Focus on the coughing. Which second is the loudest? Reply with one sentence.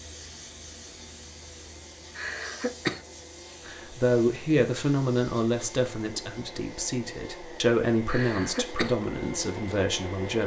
The volume of the coughing peaks at 3 seconds.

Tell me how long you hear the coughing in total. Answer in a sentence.
You can hear the coughing for 2 seconds altogether.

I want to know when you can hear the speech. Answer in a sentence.
You can hear the speech from 3.6 to 10.4 s.